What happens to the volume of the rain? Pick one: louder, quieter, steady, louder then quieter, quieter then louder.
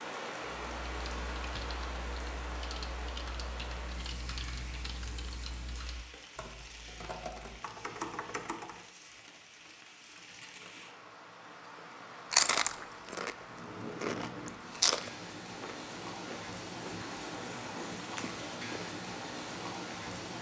quieter then louder.